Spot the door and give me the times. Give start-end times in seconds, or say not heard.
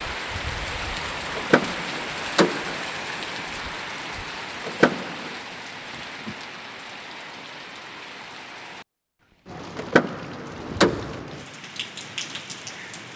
1.4-2.8, 4.7-5.3, 9.8-11.2.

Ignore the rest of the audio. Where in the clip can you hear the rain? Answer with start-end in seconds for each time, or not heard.
0.0-13.1.